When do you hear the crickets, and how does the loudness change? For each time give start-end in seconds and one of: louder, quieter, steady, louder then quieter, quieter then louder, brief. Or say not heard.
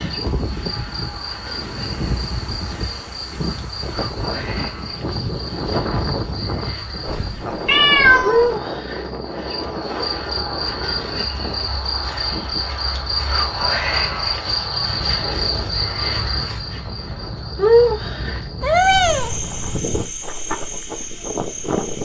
0.0-22.0 louder.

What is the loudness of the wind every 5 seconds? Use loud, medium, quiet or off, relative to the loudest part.
loud, loud, medium, medium, loud.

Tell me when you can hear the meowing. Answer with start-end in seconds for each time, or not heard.
7.1-8.6, 18.6-19.4.